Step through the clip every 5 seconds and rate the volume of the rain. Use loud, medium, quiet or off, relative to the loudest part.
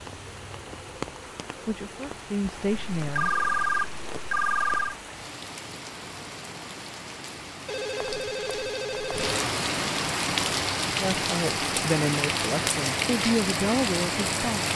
quiet, medium, loud.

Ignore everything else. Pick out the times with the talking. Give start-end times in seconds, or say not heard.
1.6-3.3, 11.0-14.7.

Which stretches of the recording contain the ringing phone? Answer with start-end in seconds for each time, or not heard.
2.7-5.0, 7.7-9.4.